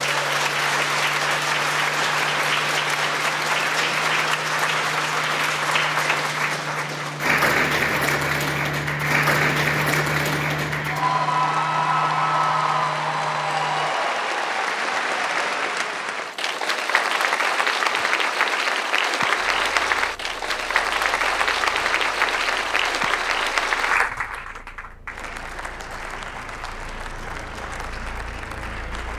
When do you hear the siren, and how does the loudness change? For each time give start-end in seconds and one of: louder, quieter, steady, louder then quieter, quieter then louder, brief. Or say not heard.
not heard.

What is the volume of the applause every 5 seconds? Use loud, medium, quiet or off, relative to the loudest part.
loud, loud, loud, loud, loud, quiet.